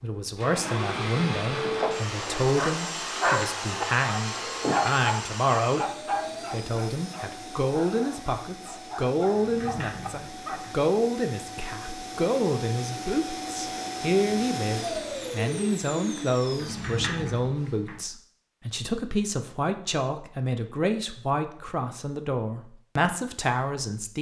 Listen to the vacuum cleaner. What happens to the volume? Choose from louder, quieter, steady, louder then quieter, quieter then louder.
quieter then louder.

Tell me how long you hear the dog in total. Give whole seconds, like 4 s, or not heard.
9 s.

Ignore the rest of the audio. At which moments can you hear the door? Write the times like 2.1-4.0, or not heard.
4.5-5.0, 9.3-10.8, 16.6-18.1.